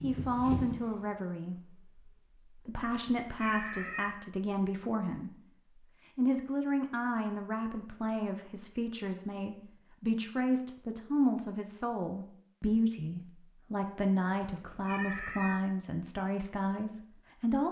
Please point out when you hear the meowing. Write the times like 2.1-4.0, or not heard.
2.9-4.2, 14.4-15.6.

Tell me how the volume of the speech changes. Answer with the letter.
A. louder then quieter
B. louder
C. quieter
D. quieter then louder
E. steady
E.